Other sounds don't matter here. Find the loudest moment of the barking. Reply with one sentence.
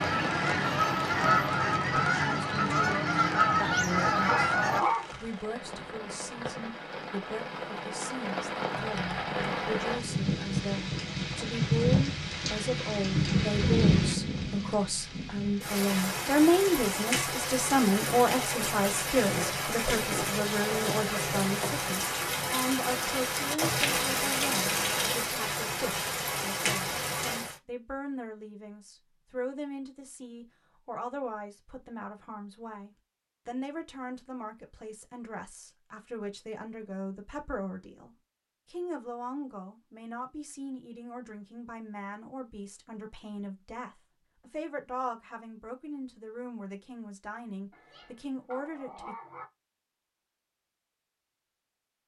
The volume of the barking peaks at 5 seconds.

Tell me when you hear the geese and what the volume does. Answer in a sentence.
The geese can be heard from 0.0 to 4.8 s, at a steady volume.